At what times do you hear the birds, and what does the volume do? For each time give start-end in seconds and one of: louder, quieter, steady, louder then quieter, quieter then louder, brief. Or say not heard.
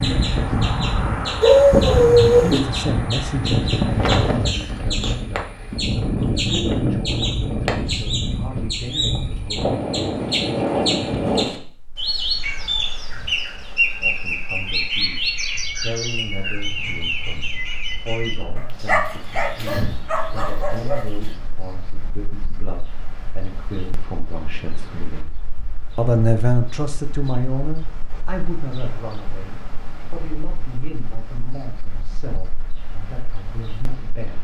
0.0-21.4 louder then quieter.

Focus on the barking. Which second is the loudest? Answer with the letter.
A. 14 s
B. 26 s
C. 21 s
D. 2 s
D.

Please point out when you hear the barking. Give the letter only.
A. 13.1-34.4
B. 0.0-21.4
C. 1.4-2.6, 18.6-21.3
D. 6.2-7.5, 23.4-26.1
C.